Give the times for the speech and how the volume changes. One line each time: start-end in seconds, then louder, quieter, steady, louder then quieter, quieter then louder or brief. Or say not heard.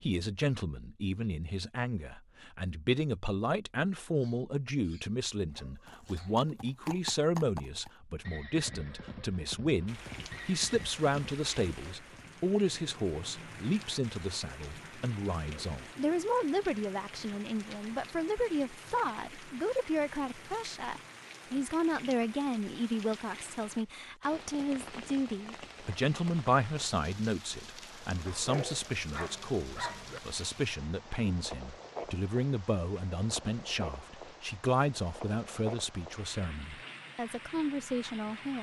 0.0-38.5 steady.